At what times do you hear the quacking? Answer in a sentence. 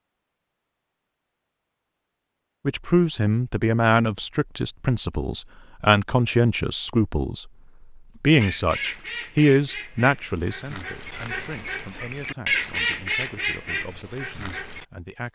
You can hear the quacking from 8.3 to 14.8 s.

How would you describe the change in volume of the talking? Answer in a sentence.
The loudness of the talking goes down.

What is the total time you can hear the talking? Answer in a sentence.
The talking can be heard for 12 seconds in total.